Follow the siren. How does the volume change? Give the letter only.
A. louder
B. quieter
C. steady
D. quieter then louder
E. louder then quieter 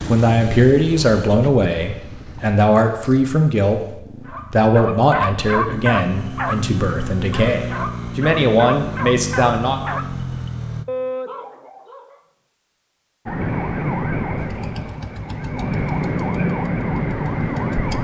D.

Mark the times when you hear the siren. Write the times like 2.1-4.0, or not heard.
13.2-17.9.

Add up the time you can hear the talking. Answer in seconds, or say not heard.
10 s.